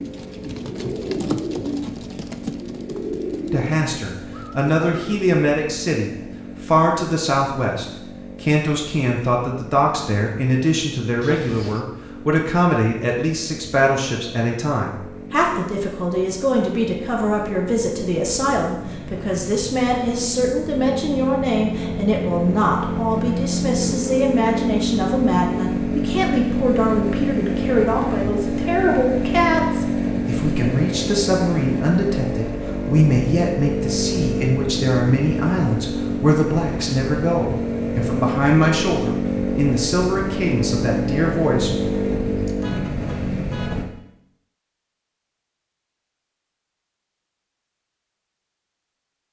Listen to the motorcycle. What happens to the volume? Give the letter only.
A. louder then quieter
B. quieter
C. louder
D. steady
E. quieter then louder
C.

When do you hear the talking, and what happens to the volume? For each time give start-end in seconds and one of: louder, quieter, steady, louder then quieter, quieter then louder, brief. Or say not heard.
3.5-41.7 steady.